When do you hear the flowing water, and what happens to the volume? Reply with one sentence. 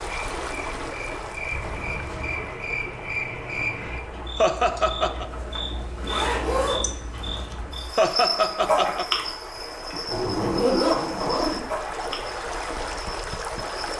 The flowing water can be heard from 0.0 to 13.9 s, getting quieter then louder.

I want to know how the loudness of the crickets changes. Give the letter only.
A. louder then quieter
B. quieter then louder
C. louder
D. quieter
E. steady
A.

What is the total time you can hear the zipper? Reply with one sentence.
The zipper can be heard for 5 seconds in total.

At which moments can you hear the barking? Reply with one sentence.
The barking can't be heard in this clip.